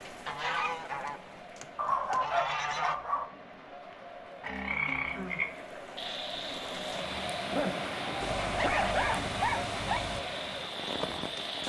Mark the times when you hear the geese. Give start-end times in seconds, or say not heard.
0.2-3.0, 8.2-10.2.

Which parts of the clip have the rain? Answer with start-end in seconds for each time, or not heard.
0.0-11.6.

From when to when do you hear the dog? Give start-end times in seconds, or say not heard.
1.8-3.3, 7.5-10.0.